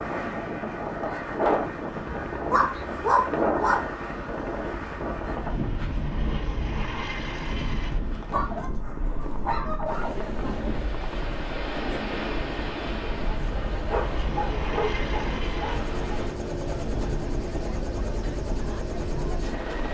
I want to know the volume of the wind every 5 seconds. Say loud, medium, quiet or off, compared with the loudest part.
loud, medium, medium, medium.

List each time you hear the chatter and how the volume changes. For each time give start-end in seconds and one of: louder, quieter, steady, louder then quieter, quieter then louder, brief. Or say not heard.
9.1-19.9 steady.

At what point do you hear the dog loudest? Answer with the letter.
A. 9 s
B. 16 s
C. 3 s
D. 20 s
C.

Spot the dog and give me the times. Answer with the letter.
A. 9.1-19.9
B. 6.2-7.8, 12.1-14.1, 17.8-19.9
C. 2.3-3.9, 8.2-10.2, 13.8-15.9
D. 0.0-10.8
C.